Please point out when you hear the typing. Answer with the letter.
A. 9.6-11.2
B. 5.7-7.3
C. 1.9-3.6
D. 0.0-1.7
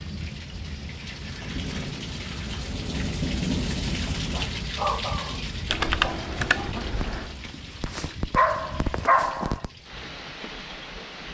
B.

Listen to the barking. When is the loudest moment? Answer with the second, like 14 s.
9 s.